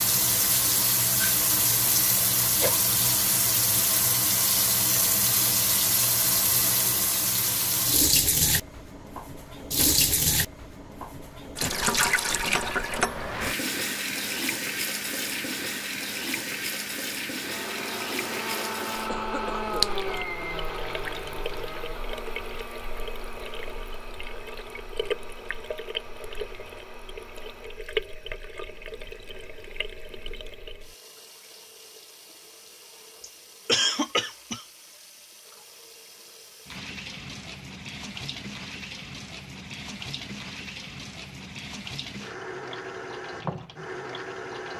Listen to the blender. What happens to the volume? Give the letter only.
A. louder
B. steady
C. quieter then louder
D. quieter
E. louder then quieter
D.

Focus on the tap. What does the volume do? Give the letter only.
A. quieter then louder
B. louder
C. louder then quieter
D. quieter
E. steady
D.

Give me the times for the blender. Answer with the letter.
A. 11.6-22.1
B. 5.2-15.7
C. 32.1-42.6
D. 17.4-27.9
D.